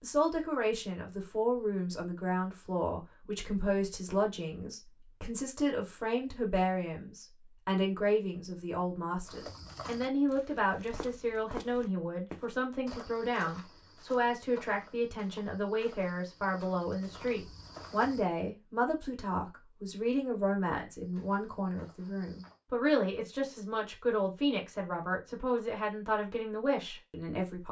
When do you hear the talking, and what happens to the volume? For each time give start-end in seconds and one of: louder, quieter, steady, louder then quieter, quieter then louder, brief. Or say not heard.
0.0-27.6 steady.